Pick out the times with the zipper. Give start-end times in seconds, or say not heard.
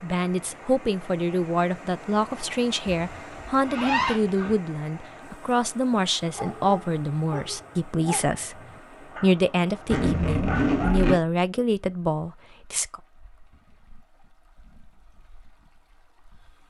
3.1-4.5, 9.9-11.2.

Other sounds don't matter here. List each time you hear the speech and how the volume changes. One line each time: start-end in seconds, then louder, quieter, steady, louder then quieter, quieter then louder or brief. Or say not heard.
0.0-13.0 steady.